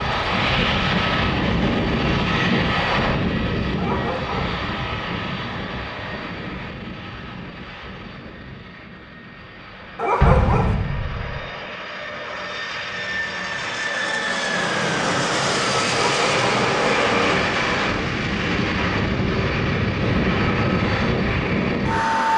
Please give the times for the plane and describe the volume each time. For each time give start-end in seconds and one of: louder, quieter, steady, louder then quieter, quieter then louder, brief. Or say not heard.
0.0-22.3 quieter then louder.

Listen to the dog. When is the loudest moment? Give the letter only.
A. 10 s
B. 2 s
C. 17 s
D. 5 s
A.